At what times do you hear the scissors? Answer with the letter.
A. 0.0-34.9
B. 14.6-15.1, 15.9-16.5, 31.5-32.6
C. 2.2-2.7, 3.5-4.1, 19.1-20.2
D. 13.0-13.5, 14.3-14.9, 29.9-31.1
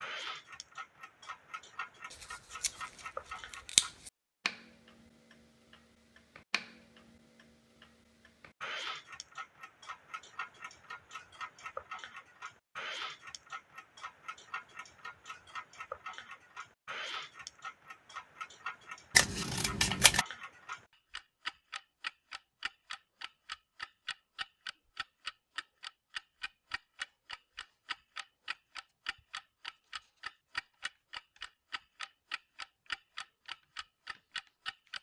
C.